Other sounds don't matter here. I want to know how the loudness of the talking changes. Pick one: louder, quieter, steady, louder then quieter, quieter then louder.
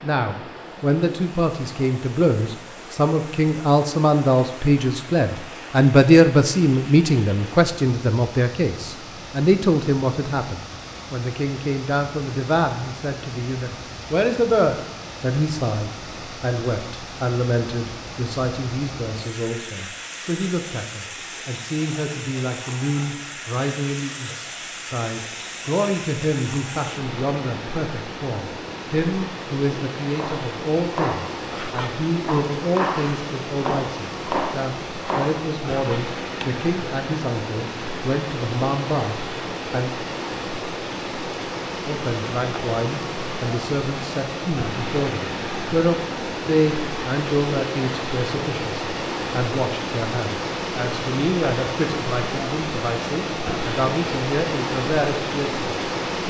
quieter.